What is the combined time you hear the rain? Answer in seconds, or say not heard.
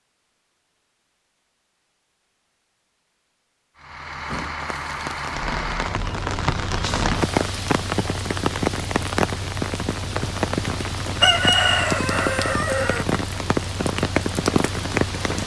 11 s.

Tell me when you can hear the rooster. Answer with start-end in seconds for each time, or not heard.
11.2-13.1.